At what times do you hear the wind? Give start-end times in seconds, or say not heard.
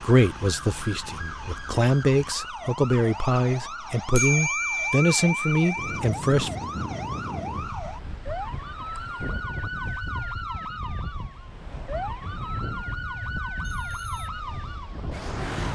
5.8-15.7.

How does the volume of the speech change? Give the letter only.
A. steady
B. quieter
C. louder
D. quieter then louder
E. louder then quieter
C.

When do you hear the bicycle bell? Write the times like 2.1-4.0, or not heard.
4.2-5.8, 13.7-14.3.